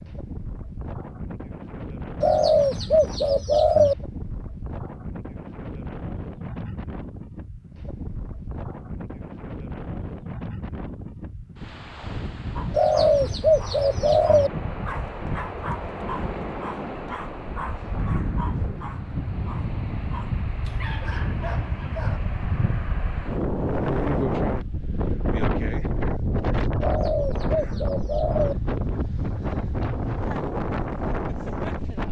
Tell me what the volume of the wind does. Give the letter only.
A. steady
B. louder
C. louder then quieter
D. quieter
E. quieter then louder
B.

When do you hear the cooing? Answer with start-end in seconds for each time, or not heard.
2.2-4.0, 12.7-14.5, 26.8-28.6.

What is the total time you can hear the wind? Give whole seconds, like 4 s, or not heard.
32 s.